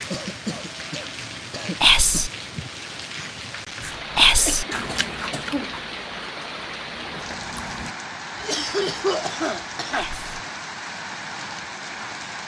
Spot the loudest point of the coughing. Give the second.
9 s.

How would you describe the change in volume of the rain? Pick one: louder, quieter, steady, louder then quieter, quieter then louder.
steady.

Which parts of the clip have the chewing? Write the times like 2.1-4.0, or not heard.
3.8-8.0.